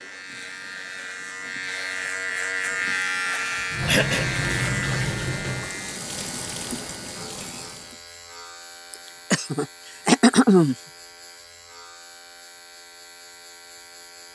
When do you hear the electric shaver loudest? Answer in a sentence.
The volume of the electric shaver peaks at 3 seconds.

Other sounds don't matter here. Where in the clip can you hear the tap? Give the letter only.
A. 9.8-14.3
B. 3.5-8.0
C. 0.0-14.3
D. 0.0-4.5
B.